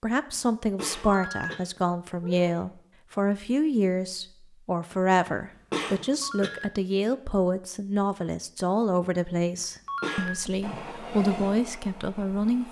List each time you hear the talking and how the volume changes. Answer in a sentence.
You can hear the talking from 0.0 to 12.6 s, at a steady volume.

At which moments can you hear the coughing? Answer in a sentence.
The coughing can be heard from 0.3 to 1.6 s, from 5.2 to 6.5 s and from 9.6 to 10.3 s.